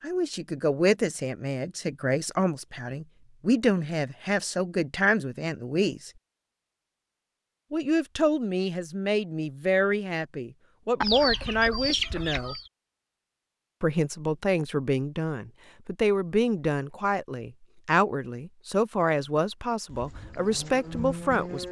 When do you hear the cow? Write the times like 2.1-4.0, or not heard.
19.9-21.6.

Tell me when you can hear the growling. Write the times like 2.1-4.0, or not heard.
not heard.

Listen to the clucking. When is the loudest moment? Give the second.
11 s.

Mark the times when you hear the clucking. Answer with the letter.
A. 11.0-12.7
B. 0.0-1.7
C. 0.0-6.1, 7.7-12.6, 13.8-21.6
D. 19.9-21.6
A.